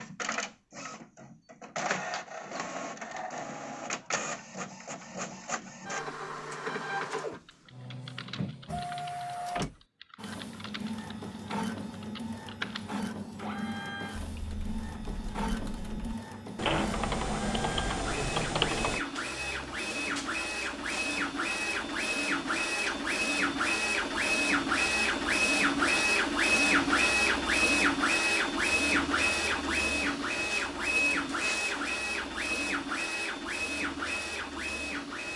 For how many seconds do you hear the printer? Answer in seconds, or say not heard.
35 s.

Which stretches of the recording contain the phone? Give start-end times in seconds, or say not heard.
not heard.